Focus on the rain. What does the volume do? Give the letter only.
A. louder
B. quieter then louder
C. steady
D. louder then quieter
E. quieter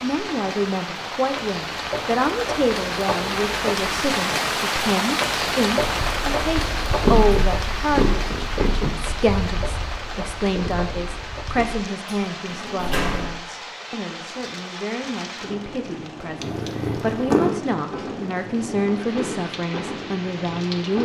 E.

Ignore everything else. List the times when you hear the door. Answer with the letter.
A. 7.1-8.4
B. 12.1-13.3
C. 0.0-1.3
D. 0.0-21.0
B.